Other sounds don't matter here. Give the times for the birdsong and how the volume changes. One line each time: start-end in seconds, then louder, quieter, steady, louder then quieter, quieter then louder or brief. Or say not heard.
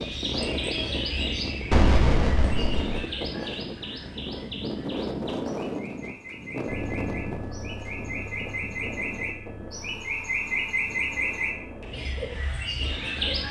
0.0-13.4 quieter then louder.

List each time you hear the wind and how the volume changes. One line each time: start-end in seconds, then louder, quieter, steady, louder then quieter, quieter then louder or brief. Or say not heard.
0.0-13.4 quieter.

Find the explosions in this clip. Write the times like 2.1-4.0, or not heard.
1.7-3.0.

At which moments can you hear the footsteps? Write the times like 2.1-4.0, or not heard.
not heard.